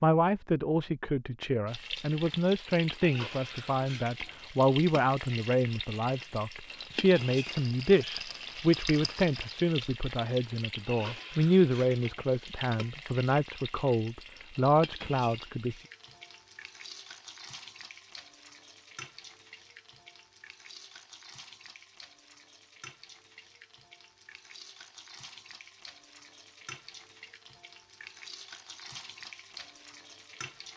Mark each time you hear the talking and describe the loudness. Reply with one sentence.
The talking can be heard from 0.0 to 15.8 s, at a steady volume.